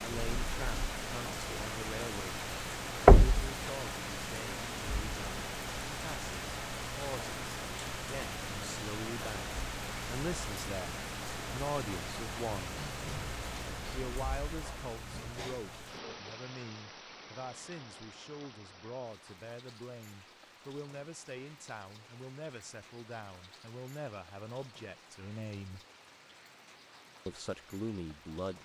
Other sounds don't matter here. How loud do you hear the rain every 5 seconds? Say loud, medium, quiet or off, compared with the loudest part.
loud, loud, loud, medium, quiet, quiet.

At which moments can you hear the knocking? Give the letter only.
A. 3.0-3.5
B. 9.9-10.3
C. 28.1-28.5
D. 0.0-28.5
A.